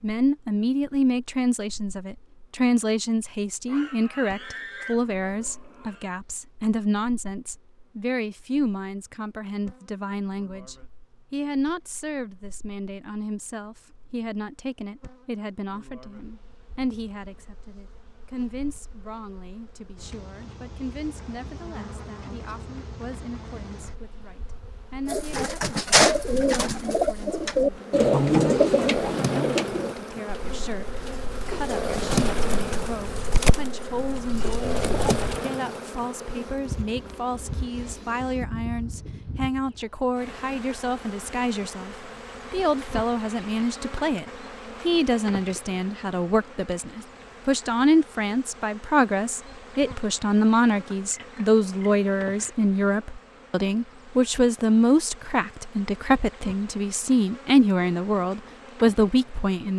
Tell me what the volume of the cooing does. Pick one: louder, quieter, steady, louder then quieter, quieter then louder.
quieter then louder.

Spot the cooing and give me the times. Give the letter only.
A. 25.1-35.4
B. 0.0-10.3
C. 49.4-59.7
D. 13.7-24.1
A.